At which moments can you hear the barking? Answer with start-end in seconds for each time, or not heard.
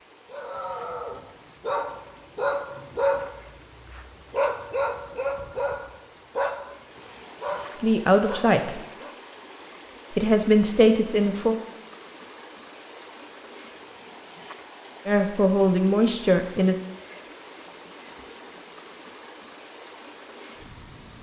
0.3-9.2.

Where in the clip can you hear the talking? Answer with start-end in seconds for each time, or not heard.
7.8-8.8, 10.2-11.6, 15.1-16.8.